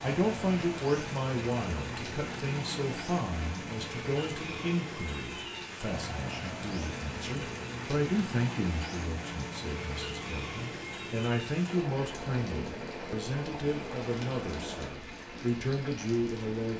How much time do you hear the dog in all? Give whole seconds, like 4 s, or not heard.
not heard.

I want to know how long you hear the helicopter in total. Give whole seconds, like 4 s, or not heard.
15 s.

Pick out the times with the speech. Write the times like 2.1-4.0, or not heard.
0.0-16.7.